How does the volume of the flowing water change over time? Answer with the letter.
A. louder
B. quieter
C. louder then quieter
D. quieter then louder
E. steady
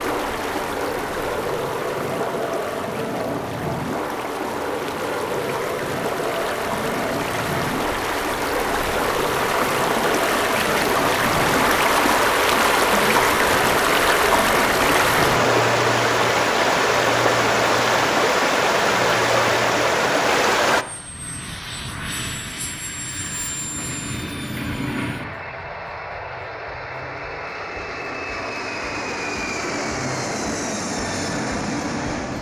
A.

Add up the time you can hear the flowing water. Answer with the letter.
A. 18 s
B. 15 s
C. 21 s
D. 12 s
C.